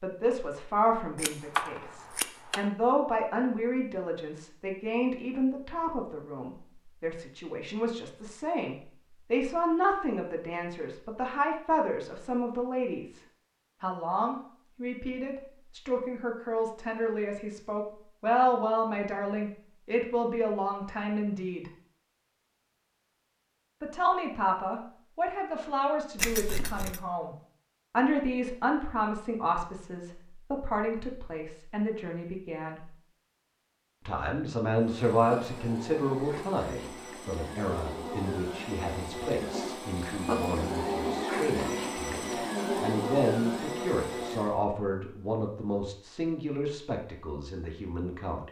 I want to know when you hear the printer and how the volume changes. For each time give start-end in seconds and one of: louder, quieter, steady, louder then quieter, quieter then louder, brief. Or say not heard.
34.8-44.6 louder.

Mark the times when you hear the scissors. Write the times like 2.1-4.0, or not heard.
1.1-2.7, 26.1-27.1.